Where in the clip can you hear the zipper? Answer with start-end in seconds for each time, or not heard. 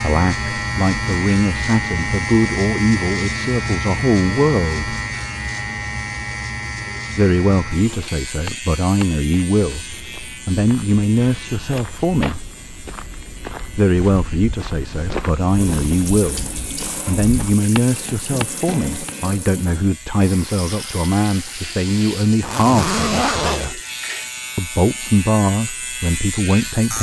22.4-23.7.